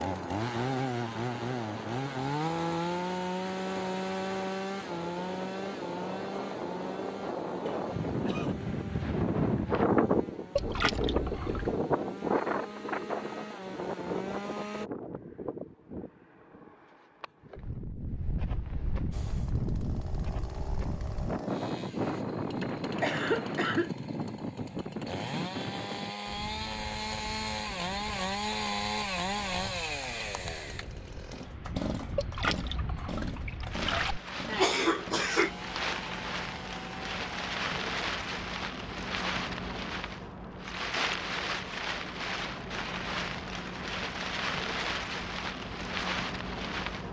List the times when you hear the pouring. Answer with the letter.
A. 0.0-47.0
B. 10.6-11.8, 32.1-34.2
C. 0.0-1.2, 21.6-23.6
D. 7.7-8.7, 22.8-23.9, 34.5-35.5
B.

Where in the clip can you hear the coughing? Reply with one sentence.
You can hear the coughing from 7.7 to 8.7 s, from 22.8 to 23.9 s and from 34.5 to 35.5 s.